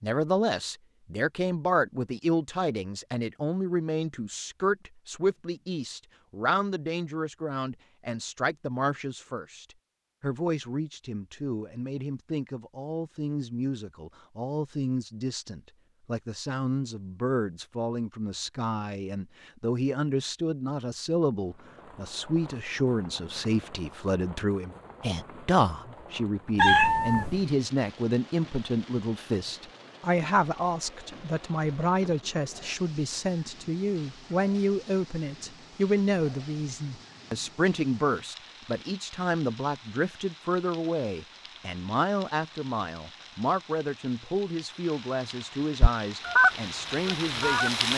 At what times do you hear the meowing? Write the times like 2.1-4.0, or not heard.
26.6-27.4.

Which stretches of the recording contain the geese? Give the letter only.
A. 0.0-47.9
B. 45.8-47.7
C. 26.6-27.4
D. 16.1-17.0
B.